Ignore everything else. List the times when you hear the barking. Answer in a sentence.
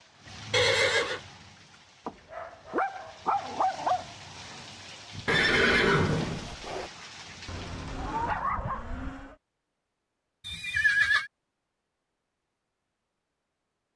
You can hear the barking from 2.0 to 4.0 s and from 7.5 to 9.3 s.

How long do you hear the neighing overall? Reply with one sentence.
You can hear the neighing for 3 seconds altogether.